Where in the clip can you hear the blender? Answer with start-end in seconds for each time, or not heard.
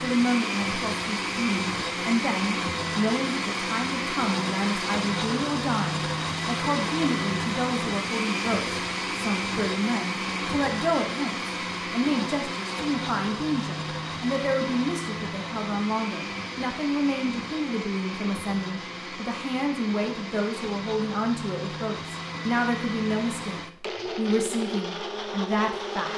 0.0-26.1.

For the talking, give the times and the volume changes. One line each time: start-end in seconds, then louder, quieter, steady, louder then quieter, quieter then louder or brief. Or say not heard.
0.0-26.1 steady.